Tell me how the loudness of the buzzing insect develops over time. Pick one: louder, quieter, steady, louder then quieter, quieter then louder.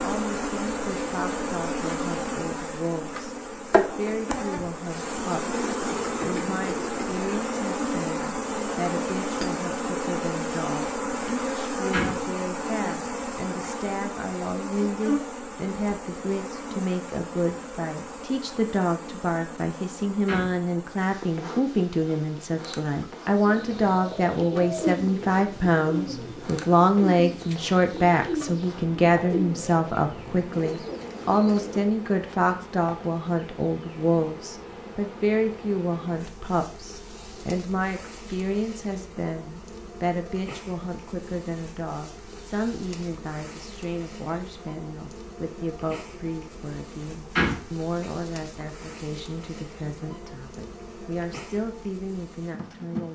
quieter.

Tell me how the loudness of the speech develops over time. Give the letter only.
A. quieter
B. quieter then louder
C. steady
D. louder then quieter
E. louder
D.